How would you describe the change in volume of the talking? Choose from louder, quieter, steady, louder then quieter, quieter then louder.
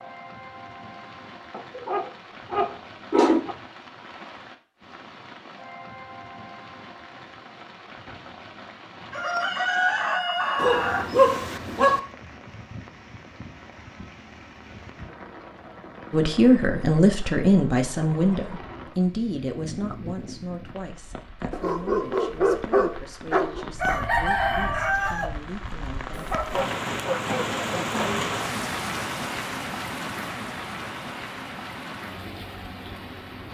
quieter.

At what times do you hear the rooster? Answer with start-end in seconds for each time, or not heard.
9.1-11.1, 23.8-25.3.